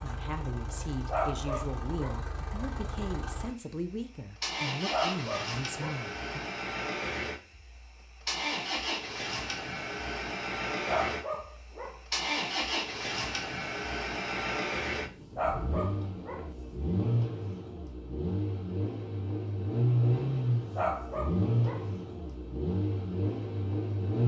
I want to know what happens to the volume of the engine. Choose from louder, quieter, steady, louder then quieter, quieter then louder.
louder.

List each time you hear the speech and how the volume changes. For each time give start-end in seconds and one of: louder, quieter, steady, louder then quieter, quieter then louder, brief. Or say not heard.
0.0-6.4 steady.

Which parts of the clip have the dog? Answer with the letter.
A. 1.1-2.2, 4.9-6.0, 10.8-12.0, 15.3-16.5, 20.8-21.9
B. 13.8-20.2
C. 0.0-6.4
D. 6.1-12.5
A.